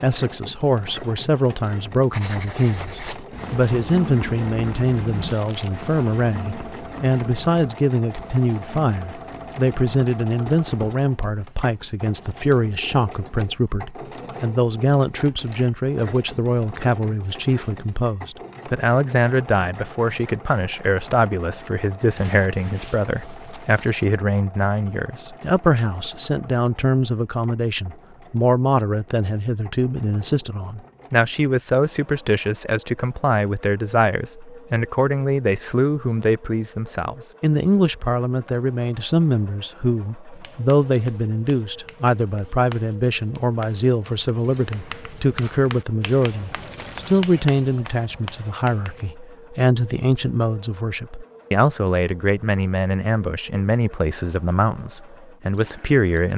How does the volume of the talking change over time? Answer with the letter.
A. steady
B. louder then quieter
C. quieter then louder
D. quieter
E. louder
A.